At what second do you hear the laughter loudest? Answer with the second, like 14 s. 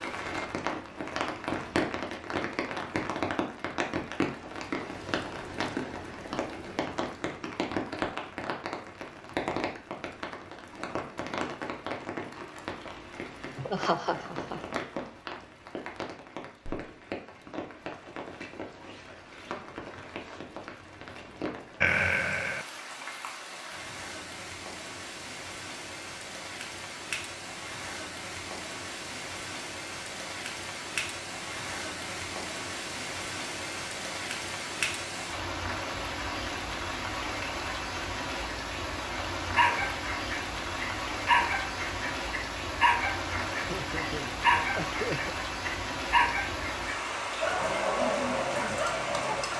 22 s.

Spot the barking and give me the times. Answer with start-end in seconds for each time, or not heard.
39.5-49.5.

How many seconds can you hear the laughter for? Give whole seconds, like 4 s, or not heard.
4 s.